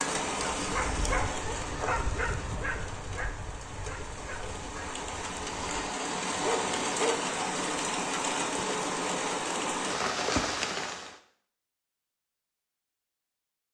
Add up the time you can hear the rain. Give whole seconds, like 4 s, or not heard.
11 s.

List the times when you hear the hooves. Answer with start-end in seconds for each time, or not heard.
not heard.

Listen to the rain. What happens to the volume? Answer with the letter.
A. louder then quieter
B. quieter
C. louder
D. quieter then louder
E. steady
D.